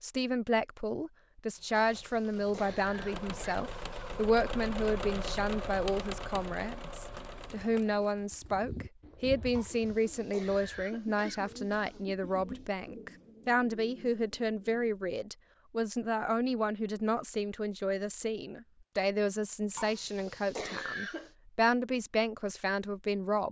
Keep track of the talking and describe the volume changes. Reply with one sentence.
The loudness of the talking stays about the same.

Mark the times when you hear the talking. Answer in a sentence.
The talking can be heard from 0.0 to 23.4 s.